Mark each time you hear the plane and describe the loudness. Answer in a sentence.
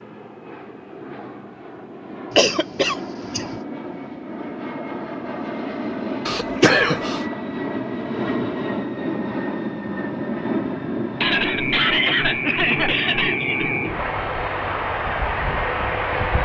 You can hear the plane from 0.0 to 16.4 s, getting louder.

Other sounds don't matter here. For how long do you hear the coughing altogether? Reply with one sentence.
You can hear the coughing for 5 seconds altogether.